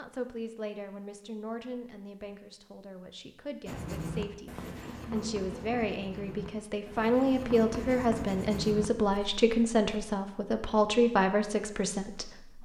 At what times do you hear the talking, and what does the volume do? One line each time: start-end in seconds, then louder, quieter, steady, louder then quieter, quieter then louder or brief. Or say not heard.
0.0-12.6 louder.